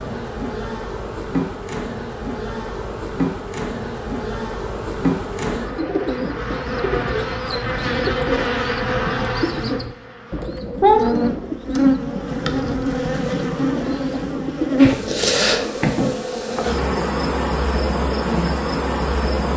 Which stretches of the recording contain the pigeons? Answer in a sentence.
You can hear the pigeons from 5.5 to 15.9 s.